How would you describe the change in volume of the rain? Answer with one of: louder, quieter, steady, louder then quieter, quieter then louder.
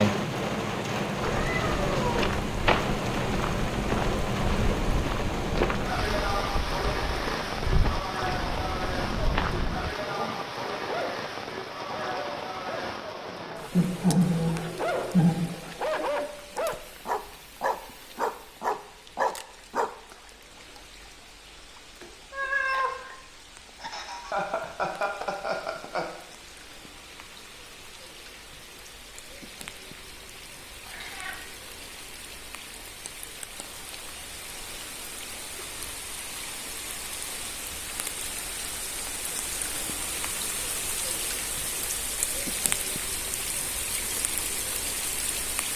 quieter then louder.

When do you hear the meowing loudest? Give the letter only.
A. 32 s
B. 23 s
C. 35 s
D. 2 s
B.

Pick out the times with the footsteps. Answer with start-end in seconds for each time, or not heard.
1.2-9.9.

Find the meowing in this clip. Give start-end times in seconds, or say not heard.
1.2-2.2, 22.0-23.1, 30.9-31.4.